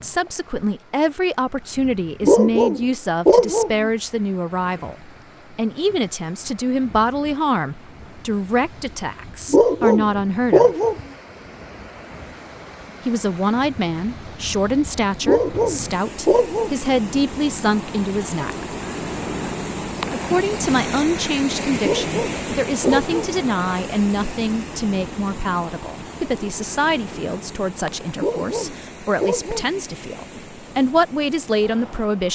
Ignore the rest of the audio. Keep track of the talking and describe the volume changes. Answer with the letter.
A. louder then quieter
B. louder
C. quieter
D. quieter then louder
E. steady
E.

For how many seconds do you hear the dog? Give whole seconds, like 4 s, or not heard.
8 s.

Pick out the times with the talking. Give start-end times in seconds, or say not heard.
0.0-10.8, 13.1-18.6, 20.1-32.2.